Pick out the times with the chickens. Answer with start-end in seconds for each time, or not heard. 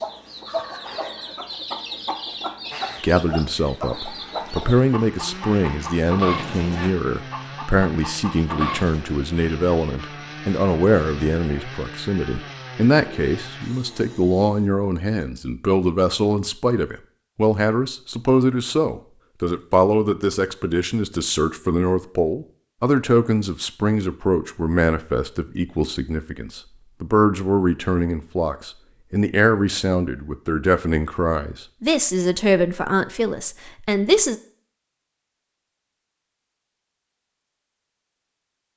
0.0-9.1.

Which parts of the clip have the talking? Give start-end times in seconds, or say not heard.
3.0-34.4.